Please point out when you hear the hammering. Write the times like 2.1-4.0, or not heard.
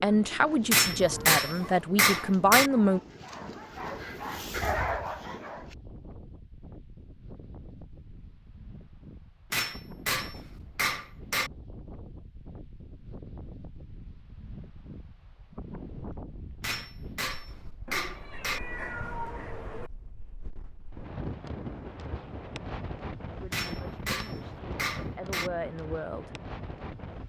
0.7-2.7, 9.5-11.5, 16.6-18.6, 23.5-25.5.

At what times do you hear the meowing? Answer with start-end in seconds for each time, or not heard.
0.8-1.4, 17.9-19.9.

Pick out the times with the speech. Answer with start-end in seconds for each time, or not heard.
0.0-3.0, 23.4-26.2.